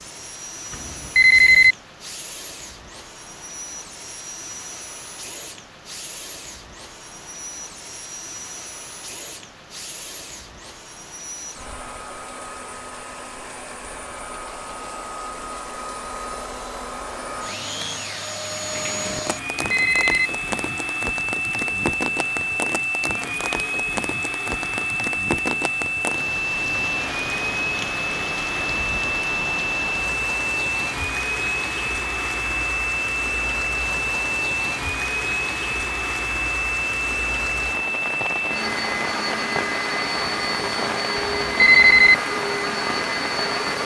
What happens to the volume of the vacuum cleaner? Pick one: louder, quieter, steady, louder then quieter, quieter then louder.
louder.